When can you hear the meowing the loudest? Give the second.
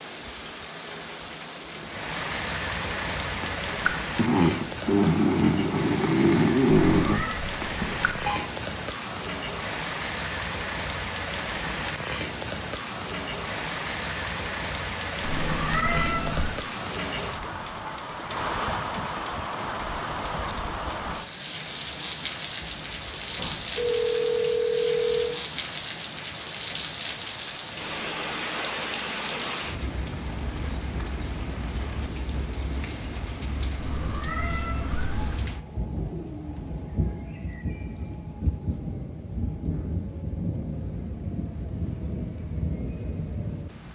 16 s.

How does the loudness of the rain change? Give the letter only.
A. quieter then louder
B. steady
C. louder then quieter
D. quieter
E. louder
B.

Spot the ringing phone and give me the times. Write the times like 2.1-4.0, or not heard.
7.6-8.4, 22.8-25.4, 36.1-36.9.